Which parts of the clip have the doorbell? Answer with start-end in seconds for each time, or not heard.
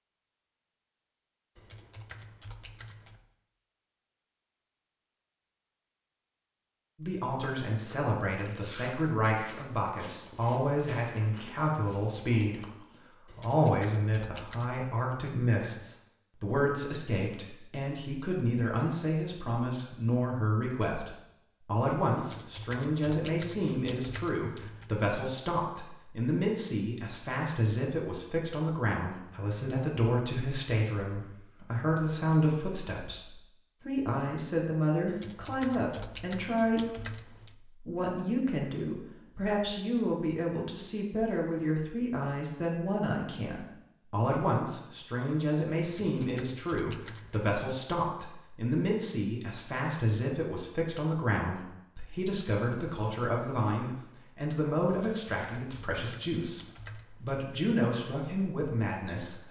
not heard.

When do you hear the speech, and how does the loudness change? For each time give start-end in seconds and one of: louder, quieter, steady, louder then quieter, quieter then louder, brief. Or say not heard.
7.0-59.4 steady.